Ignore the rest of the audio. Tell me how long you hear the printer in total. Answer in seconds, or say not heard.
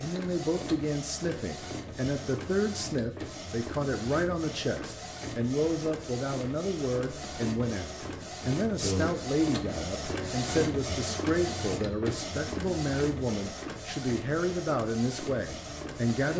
16 s.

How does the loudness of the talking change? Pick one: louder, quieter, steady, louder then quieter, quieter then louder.
steady.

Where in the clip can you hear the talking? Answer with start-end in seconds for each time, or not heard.
0.0-16.3.